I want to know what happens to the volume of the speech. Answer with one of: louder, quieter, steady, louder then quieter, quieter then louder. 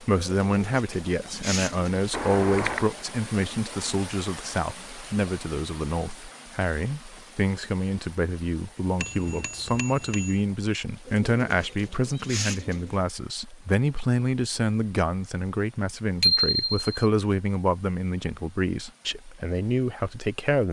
steady.